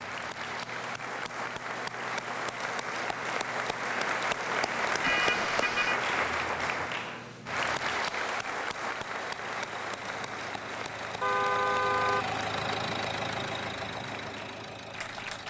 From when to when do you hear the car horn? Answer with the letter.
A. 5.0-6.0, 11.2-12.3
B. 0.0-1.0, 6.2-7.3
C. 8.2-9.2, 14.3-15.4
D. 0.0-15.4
A.